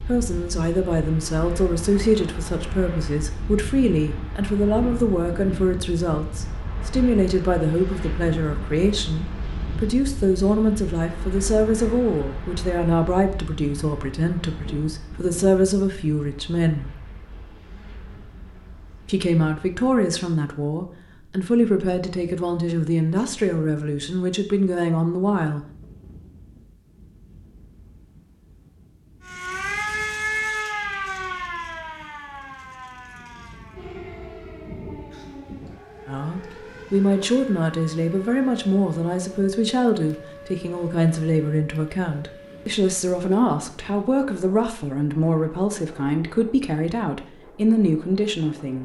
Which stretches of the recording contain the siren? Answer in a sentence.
You can hear the siren from 29.2 to 42.8 s.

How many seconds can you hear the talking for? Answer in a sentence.
The talking can be heard for 36 seconds in total.